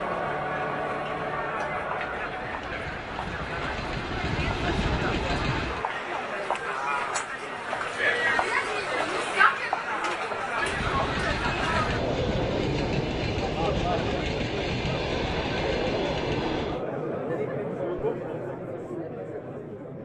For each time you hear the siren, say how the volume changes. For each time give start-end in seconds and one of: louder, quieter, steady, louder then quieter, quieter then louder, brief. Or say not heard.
not heard.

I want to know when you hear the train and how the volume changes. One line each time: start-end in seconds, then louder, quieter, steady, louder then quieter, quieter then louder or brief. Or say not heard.
0.0-5.8 louder
10.6-16.9 steady.